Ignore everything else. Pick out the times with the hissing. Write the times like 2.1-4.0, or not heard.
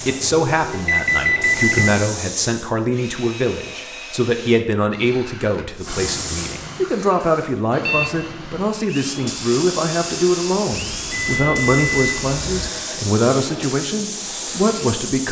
0.0-2.8, 5.8-7.6, 8.8-15.2.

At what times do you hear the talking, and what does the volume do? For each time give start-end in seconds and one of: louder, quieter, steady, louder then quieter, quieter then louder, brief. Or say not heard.
0.0-15.2 steady.